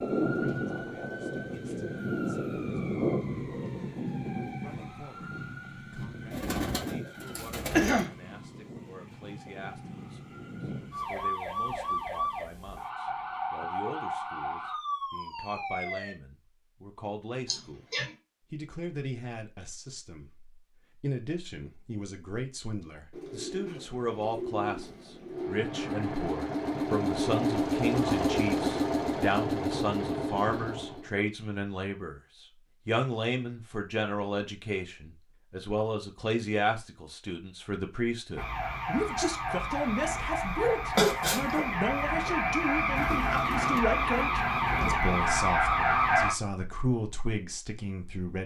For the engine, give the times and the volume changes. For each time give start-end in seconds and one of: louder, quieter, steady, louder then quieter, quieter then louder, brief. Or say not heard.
25.3-31.1 louder then quieter.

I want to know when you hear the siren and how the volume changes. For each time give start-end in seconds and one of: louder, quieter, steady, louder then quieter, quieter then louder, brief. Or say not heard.
0.0-16.1 quieter then louder
38.4-46.4 louder.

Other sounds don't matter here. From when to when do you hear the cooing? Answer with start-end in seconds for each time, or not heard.
6.3-8.1, 23.1-25.6, 43.0-45.0.